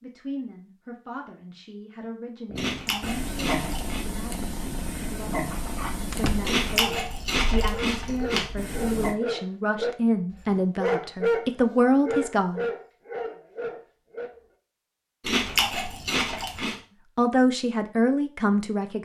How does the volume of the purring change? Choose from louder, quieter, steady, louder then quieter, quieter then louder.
quieter.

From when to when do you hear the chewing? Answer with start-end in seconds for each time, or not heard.
2.5-4.0, 6.5-8.5, 15.2-16.8.